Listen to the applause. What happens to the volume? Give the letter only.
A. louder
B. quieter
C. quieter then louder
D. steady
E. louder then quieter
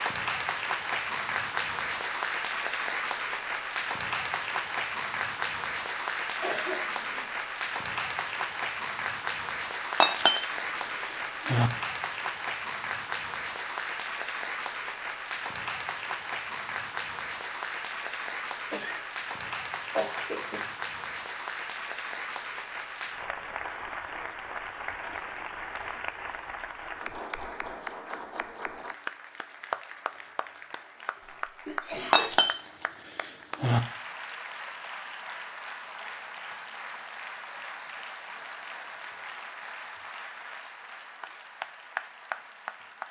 B.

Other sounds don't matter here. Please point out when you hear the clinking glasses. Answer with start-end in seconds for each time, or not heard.
10.0-11.7, 32.1-33.8.